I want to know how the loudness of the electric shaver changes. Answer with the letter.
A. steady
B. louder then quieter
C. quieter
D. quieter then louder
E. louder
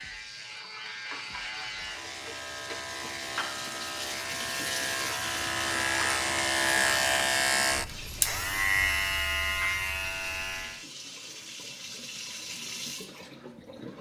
E.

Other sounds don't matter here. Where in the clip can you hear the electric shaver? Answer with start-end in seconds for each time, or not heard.
0.0-10.8.